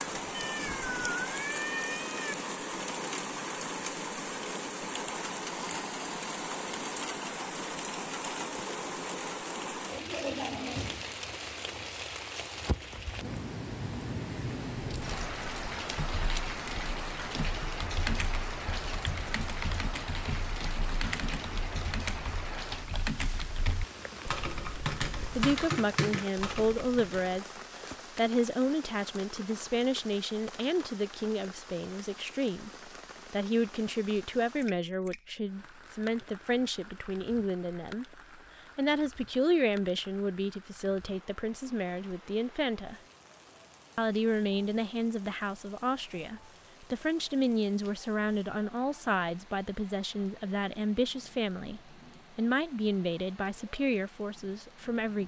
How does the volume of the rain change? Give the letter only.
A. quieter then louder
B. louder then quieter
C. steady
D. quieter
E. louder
D.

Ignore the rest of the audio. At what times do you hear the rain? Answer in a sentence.
You can hear the rain from 0.0 to 55.2 s.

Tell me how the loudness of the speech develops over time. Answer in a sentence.
The volume of the speech stays about the same.